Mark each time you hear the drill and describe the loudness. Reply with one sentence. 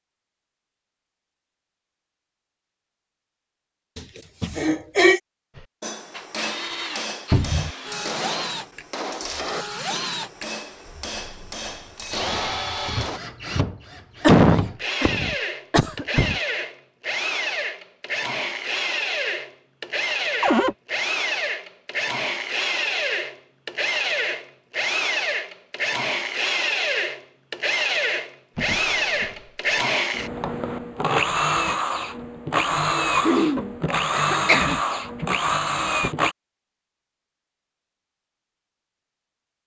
You can hear the drill from 6.1 to 36.4 s, getting louder.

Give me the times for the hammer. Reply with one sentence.
The hammer can be heard from 5.5 to 13.2 s.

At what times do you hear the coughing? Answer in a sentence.
The coughing can be heard from 4.0 to 5.2 s, from 14.2 to 16.4 s and from 33.2 to 34.8 s.